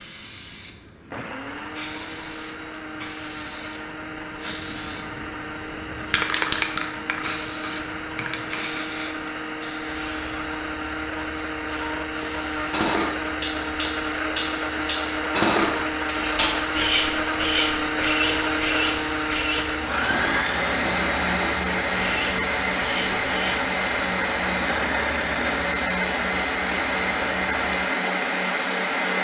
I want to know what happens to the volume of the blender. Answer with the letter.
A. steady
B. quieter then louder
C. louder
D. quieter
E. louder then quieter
C.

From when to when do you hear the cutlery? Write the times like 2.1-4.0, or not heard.
12.7-23.6.